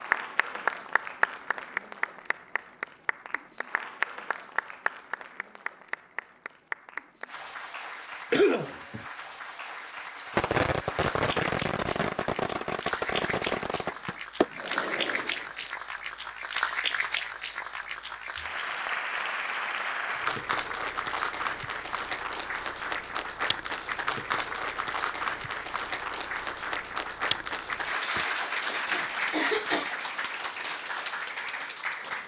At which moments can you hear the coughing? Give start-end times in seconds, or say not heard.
8.3-9.1, 28.1-29.9.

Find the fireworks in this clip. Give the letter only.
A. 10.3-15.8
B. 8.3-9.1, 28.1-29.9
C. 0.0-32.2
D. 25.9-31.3
A.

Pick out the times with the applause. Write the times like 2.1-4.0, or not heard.
0.0-32.2.